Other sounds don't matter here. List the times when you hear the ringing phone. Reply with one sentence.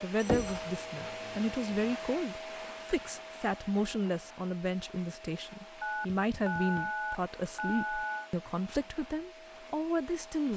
The ringing phone can be heard from 0.1 to 1.9 s and from 5.8 to 8.3 s.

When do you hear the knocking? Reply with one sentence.
The knocking can be heard from 0.2 to 0.7 s and from 6.2 to 7.0 s.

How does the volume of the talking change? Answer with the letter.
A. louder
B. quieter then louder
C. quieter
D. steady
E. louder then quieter
D.